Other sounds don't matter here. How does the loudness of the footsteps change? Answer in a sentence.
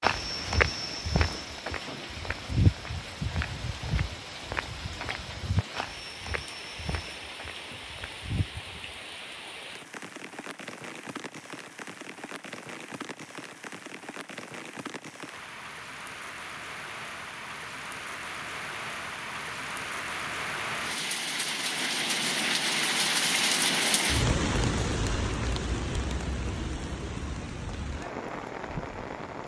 The loudness of the footsteps goes down.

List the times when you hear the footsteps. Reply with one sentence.
You can hear the footsteps from 0.0 to 8.5 s.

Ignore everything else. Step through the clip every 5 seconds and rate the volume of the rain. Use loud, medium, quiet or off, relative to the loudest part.
quiet, quiet, quiet, medium, loud, medium.